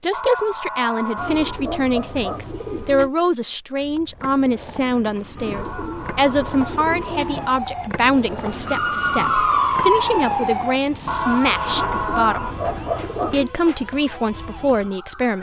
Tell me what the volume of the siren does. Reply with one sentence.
The loudness of the siren goes up, then down.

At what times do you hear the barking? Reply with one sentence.
You can hear the barking from 0.1 to 2.6 s, from 5.5 to 7.3 s and from 11.1 to 13.3 s.